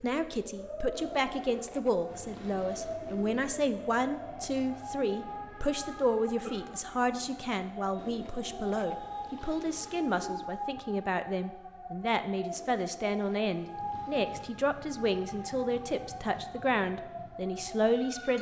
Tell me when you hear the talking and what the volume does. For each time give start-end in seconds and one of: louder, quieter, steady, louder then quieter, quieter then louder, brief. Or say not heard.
0.0-18.3 steady.